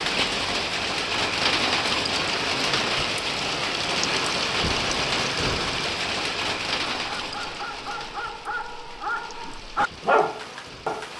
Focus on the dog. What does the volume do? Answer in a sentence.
The volume of the dog goes up.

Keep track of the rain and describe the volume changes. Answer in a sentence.
The loudness of the rain goes down.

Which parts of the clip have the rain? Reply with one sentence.
You can hear the rain from 0.0 to 11.1 s.